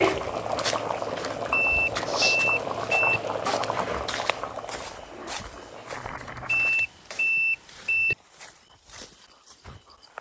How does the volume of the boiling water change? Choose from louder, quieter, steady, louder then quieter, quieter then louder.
quieter.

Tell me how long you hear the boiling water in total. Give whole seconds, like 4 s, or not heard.
7 s.